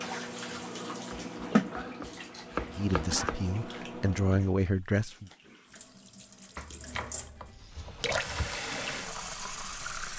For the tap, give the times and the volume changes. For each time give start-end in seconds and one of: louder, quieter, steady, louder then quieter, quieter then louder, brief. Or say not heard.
0.0-10.1 quieter then louder.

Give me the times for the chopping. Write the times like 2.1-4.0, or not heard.
1.1-3.4, 6.5-8.6.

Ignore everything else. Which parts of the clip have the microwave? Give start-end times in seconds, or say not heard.
0.0-4.5.